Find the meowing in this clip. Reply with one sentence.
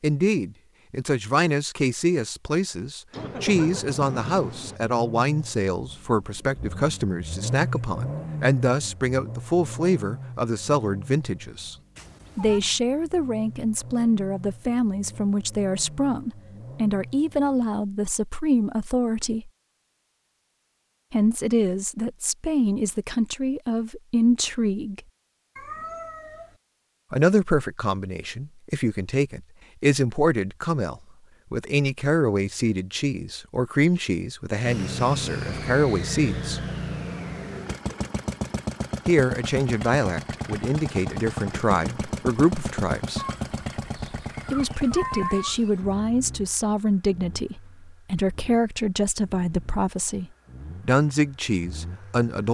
The meowing can be heard from 11.9 to 12.6 s, from 25.6 to 26.6 s and from 43.1 to 45.8 s.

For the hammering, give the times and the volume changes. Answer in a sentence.
You can't hear the hammering here.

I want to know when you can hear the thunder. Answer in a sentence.
The thunder can be heard from 3.1 to 4.8 s.